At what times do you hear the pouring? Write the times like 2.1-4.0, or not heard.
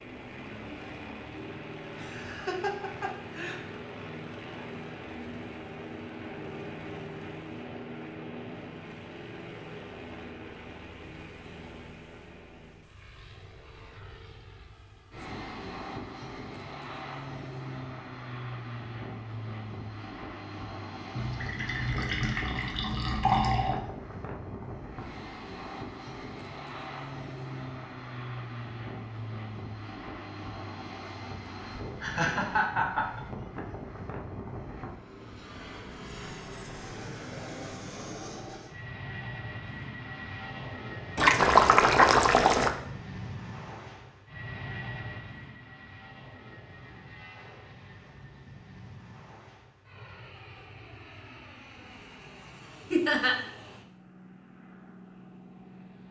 21.1-23.8, 41.1-42.7.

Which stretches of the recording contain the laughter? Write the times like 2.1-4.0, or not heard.
1.9-3.6, 32.0-33.2, 52.9-53.4.